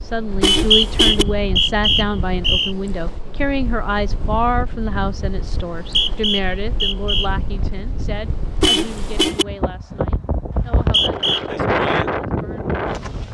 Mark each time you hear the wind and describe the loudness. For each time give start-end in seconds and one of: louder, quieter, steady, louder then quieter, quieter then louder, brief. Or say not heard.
0.0-13.2 louder.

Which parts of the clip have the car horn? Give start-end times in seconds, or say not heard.
0.4-1.2, 8.6-9.4.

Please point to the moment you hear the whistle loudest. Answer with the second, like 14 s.
1 s.